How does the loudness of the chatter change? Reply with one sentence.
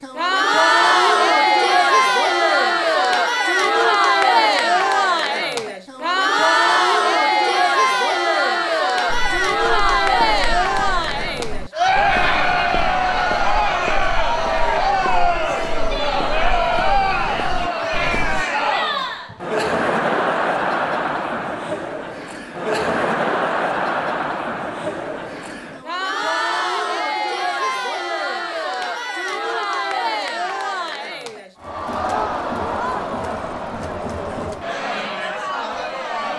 The loudness of the chatter goes down.